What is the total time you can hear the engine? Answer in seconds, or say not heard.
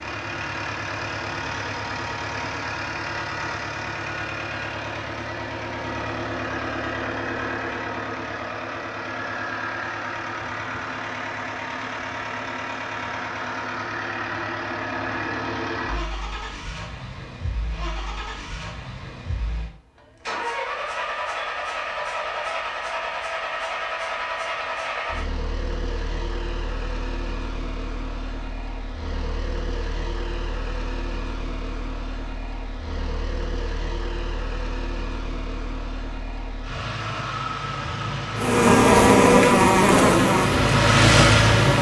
42 s.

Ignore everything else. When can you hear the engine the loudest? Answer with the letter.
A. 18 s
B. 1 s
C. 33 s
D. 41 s
D.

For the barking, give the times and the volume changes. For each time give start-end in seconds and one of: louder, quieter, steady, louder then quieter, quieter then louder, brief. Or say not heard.
not heard.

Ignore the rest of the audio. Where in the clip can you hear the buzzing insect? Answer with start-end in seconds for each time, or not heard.
38.4-41.7.